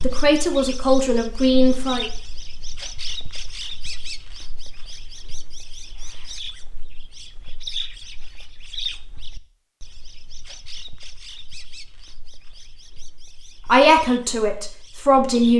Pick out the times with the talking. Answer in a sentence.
You can hear the talking from 0.0 to 2.0 s and from 13.7 to 15.5 s.